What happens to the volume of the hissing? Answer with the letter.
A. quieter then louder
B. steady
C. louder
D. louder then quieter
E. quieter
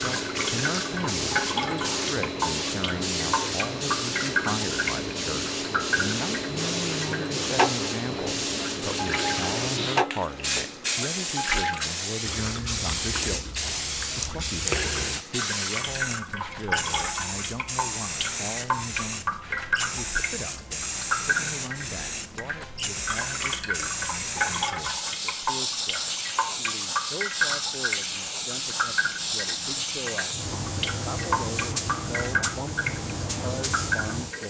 B.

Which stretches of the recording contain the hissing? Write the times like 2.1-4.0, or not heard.
0.0-34.4.